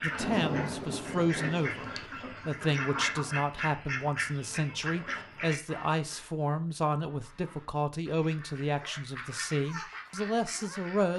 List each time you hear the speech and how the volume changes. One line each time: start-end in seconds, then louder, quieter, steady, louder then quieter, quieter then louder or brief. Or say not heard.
0.0-11.1 steady.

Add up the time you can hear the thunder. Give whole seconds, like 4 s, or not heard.
2 s.